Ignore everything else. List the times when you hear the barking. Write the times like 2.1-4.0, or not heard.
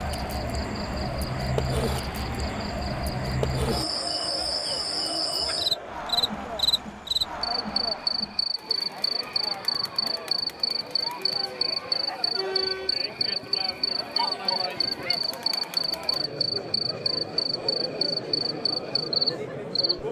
not heard.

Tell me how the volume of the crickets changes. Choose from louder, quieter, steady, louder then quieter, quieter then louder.
steady.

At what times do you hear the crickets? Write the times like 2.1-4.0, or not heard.
0.0-19.9.